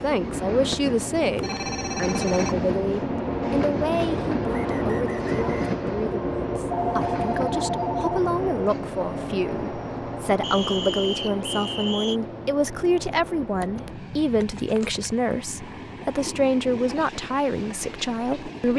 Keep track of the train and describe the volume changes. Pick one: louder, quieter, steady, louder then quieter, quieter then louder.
quieter.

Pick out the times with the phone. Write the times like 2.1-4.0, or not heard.
1.4-2.5, 6.7-8.2, 13.6-15.1.